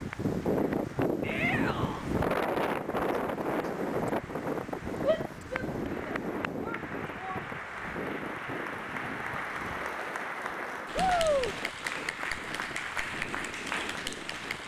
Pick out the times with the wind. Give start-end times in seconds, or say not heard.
0.0-14.6.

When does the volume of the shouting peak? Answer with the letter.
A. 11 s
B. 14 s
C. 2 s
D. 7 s
A.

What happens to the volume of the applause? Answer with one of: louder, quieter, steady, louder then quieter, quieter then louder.
louder.